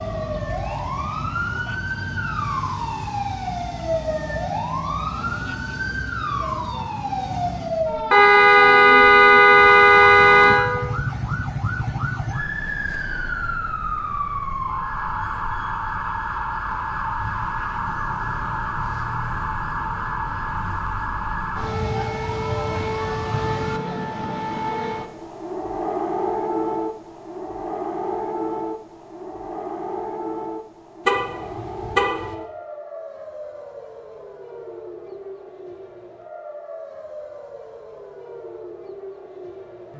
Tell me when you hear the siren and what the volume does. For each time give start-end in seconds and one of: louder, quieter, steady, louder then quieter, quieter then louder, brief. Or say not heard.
0.0-39.9 quieter.